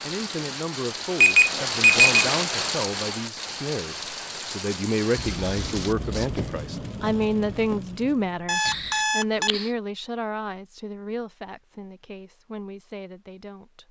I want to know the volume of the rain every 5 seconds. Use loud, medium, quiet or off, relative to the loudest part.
loud, medium, off.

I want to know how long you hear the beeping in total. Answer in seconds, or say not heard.
2 s.